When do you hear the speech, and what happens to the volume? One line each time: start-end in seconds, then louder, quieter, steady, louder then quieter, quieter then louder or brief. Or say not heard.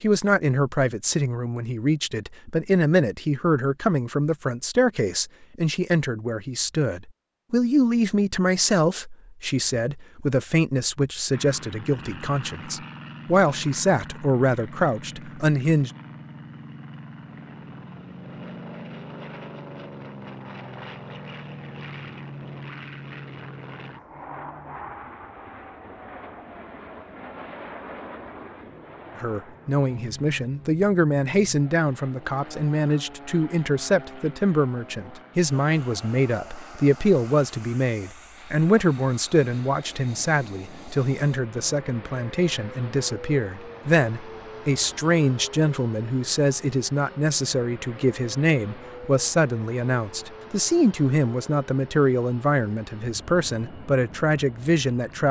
0.0-15.9 steady
29.1-55.2 steady.